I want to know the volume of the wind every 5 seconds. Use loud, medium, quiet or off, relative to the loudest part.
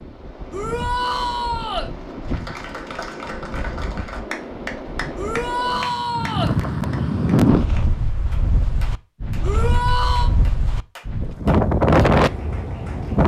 quiet, loud, loud.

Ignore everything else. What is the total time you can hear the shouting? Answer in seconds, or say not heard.
4 s.